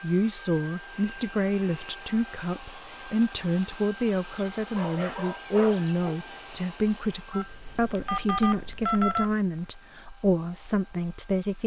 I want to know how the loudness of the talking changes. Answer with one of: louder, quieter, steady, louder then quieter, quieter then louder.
steady.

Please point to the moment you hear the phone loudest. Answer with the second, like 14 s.
9 s.